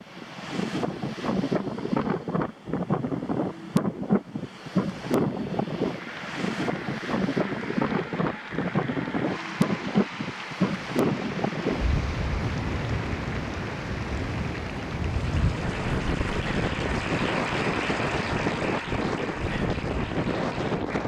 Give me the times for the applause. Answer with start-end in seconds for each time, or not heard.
5.8-21.0.